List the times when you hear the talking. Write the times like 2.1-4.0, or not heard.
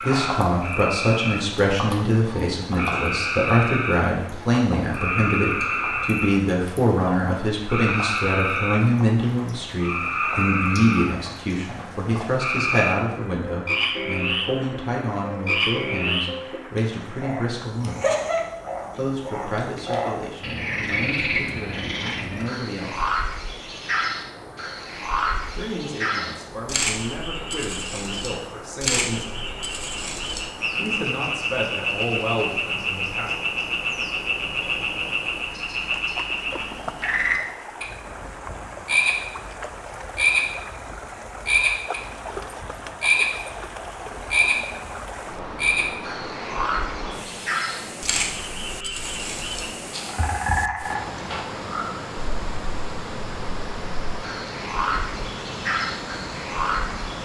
0.0-17.9, 18.9-23.2, 25.5-29.5, 30.8-33.3.